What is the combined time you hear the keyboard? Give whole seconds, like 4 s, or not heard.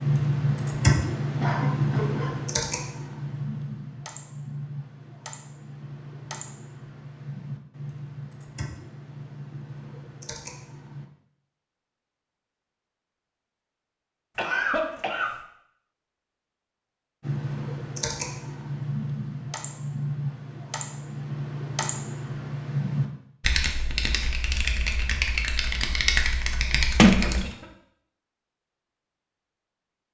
21 s.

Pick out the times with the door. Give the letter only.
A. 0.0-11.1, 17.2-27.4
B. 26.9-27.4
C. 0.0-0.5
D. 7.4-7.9
B.